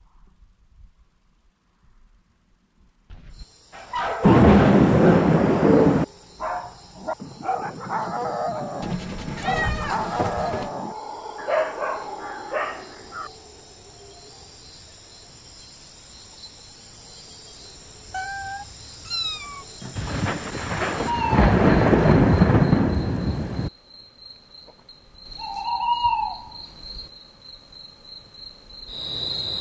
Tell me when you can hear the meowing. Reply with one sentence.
The meowing can be heard from 8.8 to 10.7 s and from 18.1 to 19.6 s.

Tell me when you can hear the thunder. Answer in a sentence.
You can hear the thunder from 4.2 to 6.0 s and from 19.9 to 23.7 s.